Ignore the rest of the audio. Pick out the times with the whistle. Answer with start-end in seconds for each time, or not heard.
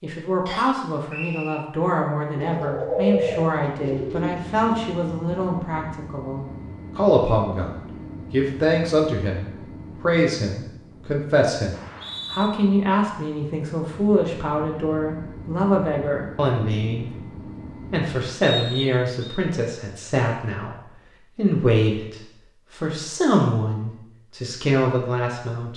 0.5-1.6, 11.7-12.5, 18.4-19.4.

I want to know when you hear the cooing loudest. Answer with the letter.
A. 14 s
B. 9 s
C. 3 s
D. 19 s
C.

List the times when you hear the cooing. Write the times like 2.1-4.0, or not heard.
2.4-4.5.